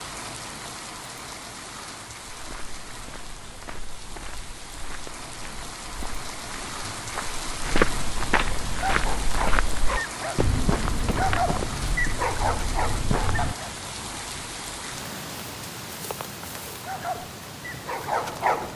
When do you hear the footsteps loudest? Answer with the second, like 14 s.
8 s.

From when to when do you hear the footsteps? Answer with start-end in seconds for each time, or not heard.
2.2-13.6.